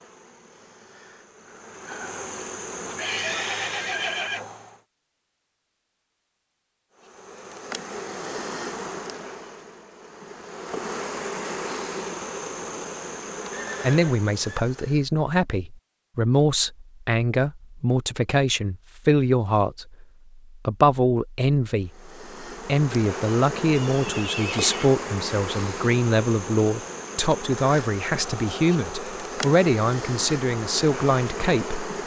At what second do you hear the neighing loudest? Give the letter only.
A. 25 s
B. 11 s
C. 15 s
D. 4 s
D.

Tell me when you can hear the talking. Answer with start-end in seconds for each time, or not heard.
13.8-31.8.